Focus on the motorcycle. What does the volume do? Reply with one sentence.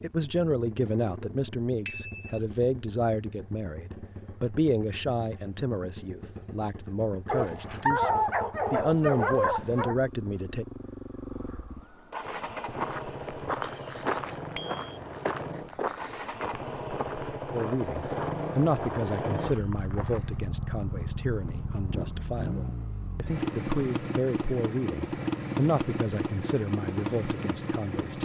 The volume of the motorcycle goes up.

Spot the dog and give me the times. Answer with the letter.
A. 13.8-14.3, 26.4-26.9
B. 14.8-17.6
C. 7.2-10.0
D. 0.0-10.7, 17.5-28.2
C.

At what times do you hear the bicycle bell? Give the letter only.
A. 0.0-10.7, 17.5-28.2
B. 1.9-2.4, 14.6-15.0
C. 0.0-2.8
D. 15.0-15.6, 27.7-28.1
B.